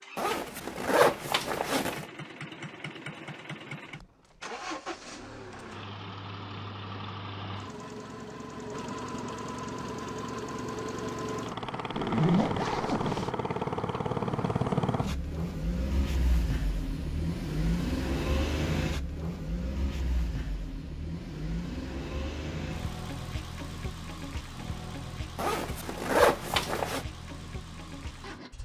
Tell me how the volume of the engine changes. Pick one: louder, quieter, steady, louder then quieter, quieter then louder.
louder then quieter.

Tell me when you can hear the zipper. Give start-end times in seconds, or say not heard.
0.1-2.0, 11.9-13.3, 25.4-27.0.